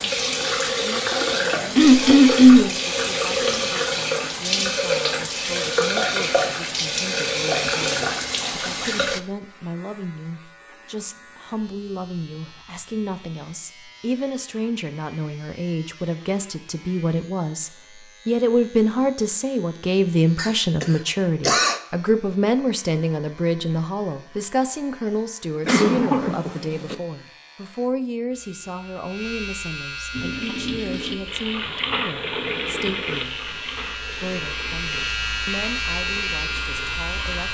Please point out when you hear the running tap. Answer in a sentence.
You can hear the running tap from 0.0 to 9.2 s and from 30.1 to 37.4 s.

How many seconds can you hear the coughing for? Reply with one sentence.
The coughing can be heard for 4 seconds in total.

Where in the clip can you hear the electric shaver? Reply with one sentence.
You can hear the electric shaver from 9.2 to 37.4 s.